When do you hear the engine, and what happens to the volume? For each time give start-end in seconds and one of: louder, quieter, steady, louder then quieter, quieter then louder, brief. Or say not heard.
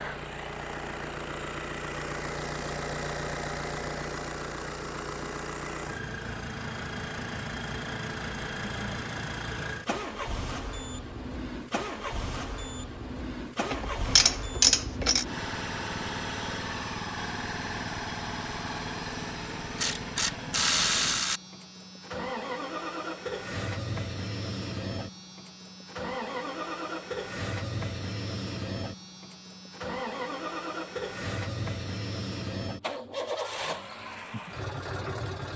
0.0-35.5 steady.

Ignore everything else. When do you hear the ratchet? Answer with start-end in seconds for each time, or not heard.
13.7-15.2, 19.8-21.4.